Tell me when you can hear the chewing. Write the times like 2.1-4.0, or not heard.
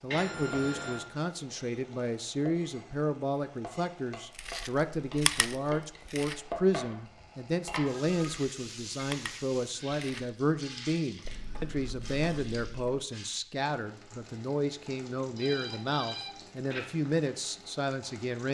4.3-6.5, 8.1-10.3, 11.2-13.0.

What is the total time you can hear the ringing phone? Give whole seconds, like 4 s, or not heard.
3 s.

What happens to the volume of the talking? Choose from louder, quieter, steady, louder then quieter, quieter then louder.
steady.